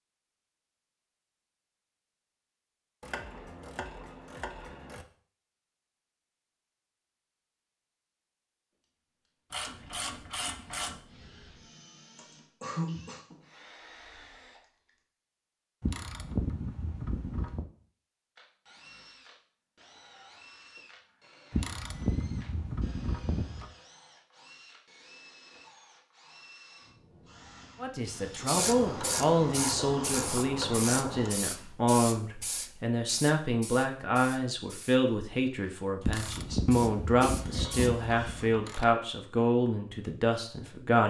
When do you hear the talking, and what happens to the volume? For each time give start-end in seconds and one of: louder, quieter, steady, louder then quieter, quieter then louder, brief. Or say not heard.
27.8-41.0 steady.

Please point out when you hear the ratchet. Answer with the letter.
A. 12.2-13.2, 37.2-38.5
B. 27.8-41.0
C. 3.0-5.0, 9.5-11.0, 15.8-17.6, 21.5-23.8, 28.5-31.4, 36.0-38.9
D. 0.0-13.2
C.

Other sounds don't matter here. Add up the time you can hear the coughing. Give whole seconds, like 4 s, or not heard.
2 s.